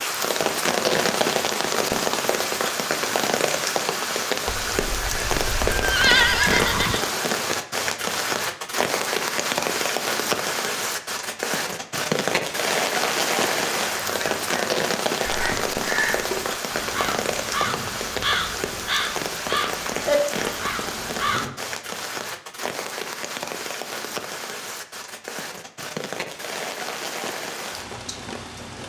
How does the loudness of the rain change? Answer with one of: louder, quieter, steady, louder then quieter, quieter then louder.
quieter.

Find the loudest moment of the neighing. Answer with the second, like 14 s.
6 s.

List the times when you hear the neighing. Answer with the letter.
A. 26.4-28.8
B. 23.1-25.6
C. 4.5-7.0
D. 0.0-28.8
C.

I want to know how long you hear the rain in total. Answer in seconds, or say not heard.
29 s.